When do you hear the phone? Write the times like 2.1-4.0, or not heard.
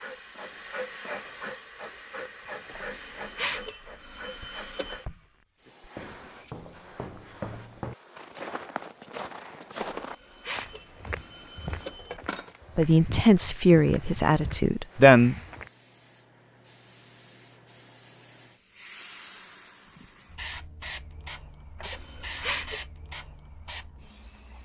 2.8-5.0, 9.9-12.6, 21.8-22.9.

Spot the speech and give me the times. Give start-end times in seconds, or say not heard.
12.8-15.3.